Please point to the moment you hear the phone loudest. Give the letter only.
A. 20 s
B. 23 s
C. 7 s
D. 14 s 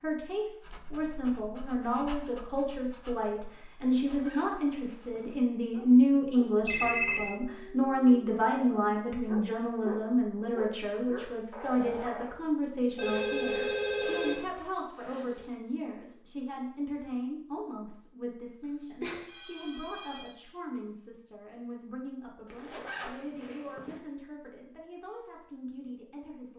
C.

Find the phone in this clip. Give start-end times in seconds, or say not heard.
6.7-7.2, 12.9-14.4, 19.0-20.3.